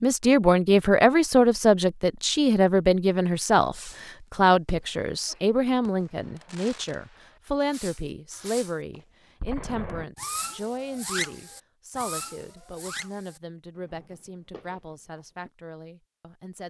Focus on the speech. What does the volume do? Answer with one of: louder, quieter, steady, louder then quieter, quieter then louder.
quieter.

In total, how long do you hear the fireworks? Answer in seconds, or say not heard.
12 s.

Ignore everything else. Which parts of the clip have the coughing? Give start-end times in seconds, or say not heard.
not heard.